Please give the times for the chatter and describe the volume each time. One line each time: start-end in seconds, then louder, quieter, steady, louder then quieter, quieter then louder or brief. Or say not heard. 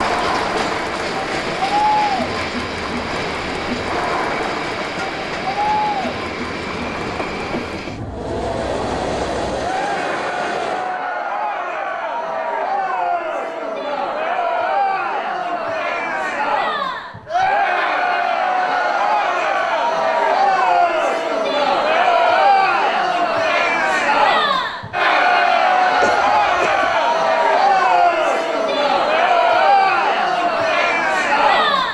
0.0-31.9 louder.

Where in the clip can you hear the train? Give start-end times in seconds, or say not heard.
0.0-11.0.